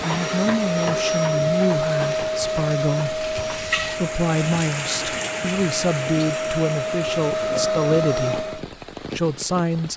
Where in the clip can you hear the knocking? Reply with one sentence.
The knocking can't be heard in this clip.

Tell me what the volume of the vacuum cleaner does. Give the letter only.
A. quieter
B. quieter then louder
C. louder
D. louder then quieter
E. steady
B.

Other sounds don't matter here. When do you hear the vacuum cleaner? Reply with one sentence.
You can hear the vacuum cleaner from 0.0 to 8.7 s.